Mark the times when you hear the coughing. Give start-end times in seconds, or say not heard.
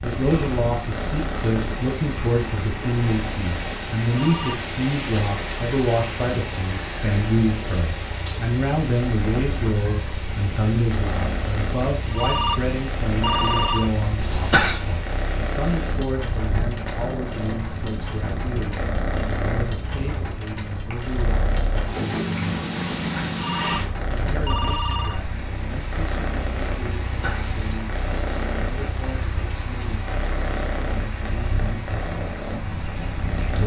14.2-14.9, 27.1-27.6.